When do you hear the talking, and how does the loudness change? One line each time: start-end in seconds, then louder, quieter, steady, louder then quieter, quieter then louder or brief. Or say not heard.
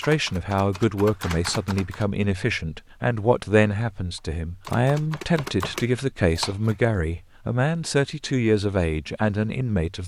0.0-10.0 steady.